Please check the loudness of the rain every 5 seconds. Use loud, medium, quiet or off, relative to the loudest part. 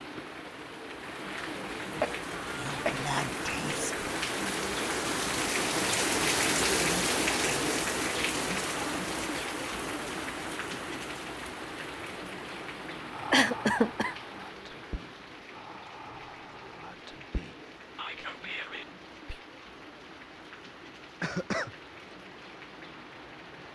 medium, loud, medium, quiet, quiet.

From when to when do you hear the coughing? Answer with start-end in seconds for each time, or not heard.
1.9-3.3, 13.3-14.2, 21.2-21.7.